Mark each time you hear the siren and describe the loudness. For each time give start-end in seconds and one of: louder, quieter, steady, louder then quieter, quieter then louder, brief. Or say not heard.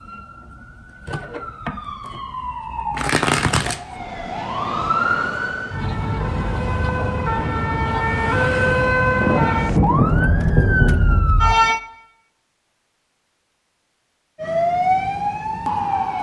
0.0-11.8 louder
14.4-16.1 brief.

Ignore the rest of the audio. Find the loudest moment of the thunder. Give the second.
10 s.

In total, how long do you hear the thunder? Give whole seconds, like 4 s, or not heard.
2 s.